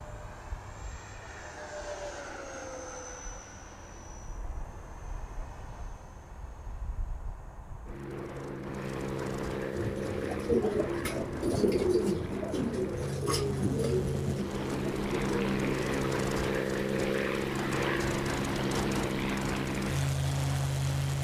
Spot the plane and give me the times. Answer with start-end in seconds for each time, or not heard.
0.0-21.1.